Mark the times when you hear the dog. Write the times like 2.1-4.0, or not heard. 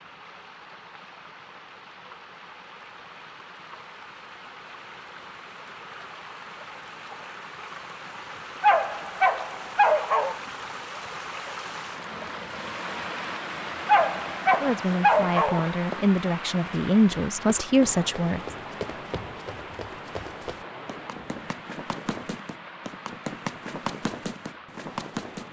8.6-10.4, 13.8-15.8.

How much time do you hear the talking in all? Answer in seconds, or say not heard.
4 s.